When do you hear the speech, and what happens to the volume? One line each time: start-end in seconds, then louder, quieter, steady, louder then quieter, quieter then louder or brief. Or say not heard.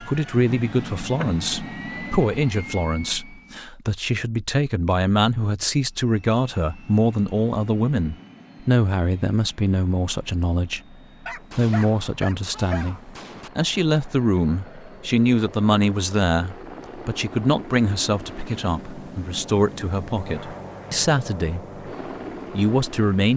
0.0-21.8 steady
22.5-23.3 brief.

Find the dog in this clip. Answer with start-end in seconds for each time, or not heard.
11.2-12.9.